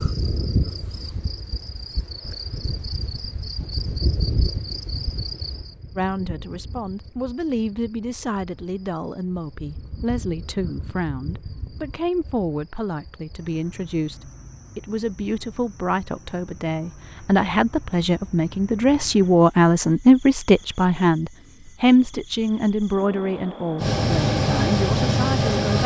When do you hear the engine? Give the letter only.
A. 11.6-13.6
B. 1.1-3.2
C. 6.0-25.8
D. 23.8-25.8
D.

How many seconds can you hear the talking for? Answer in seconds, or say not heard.
20 s.